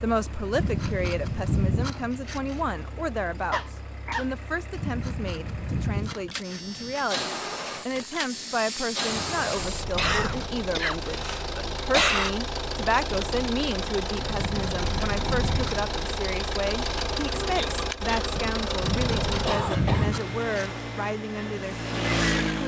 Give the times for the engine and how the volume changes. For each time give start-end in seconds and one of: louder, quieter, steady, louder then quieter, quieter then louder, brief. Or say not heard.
0.0-22.6 louder.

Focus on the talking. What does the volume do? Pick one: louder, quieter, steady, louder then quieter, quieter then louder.
steady.